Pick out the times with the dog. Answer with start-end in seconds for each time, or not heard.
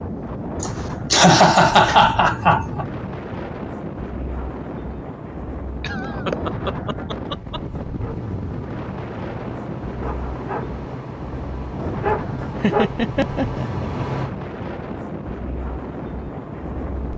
7.2-14.3.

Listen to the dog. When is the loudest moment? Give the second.
13 s.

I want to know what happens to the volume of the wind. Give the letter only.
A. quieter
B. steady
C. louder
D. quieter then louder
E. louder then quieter
B.